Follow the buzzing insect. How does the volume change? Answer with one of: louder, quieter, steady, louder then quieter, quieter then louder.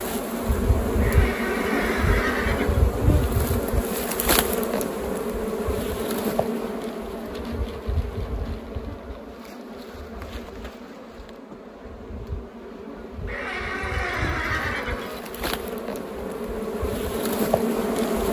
quieter then louder.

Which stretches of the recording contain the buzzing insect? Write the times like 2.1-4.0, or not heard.
0.0-18.2.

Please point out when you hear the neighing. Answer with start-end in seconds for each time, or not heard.
1.0-2.9, 13.2-15.2.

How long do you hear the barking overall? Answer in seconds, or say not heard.
not heard.